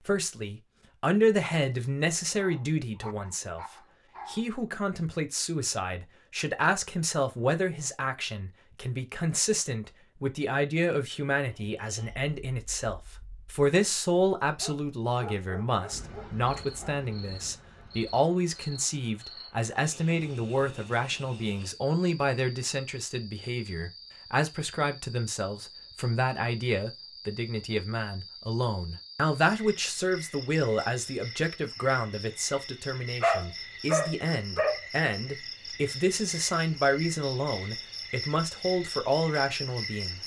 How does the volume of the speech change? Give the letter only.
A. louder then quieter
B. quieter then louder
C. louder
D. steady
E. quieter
D.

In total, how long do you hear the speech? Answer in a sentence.
The speech can be heard for 40 seconds in total.